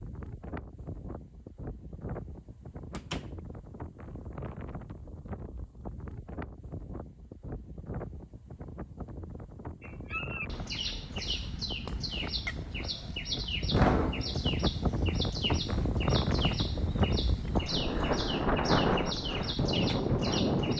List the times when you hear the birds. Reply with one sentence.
You can hear the birds from 9.8 to 20.7 s.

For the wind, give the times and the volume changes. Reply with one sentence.
The wind can be heard from 0.0 to 20.7 s, getting louder.